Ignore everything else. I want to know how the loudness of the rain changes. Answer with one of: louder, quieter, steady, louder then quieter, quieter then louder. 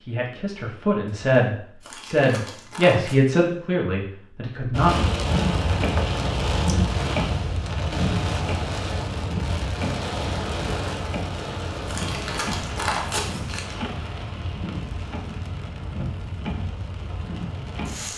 quieter.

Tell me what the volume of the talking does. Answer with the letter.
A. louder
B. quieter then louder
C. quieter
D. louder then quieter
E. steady
D.